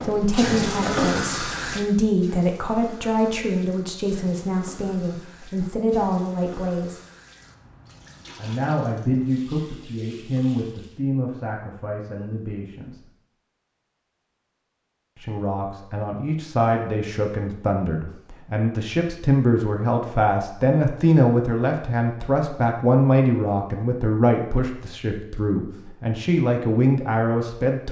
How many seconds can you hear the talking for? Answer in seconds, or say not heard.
24 s.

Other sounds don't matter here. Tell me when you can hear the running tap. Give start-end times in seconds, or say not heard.
0.0-11.0.